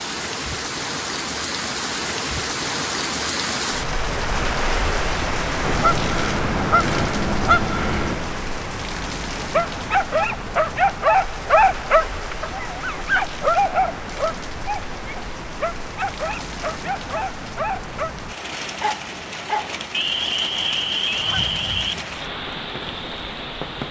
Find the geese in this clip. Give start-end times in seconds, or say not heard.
5.6-8.3, 19.9-21.9.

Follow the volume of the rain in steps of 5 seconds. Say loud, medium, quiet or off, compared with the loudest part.
loud, loud, medium, medium, medium.